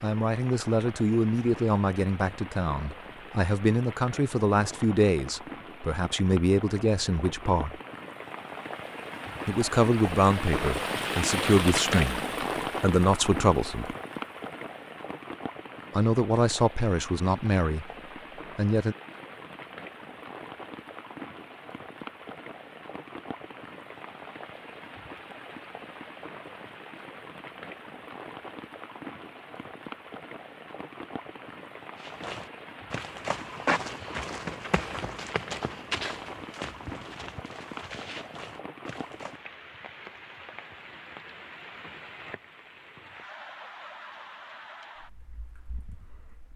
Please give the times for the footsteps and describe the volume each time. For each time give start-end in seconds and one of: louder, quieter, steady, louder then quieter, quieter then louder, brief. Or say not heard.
31.9-39.4 quieter.